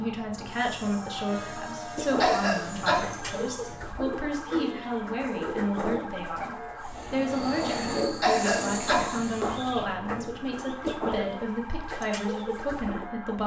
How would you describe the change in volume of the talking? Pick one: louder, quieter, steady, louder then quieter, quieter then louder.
steady.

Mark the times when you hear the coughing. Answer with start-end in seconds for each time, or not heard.
2.2-3.0, 8.2-9.2.